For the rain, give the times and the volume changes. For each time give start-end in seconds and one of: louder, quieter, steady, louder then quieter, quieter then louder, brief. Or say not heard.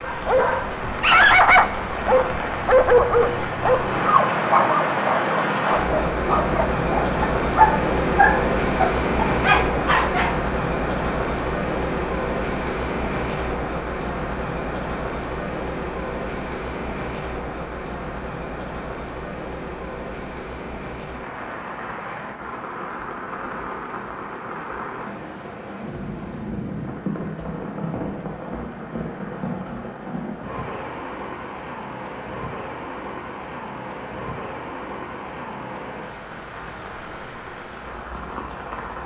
0.0-39.0 quieter.